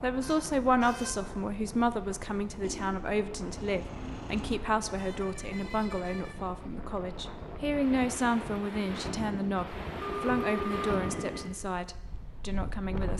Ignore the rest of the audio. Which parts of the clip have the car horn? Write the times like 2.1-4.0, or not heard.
0.2-1.1, 4.8-6.4, 10.0-11.5.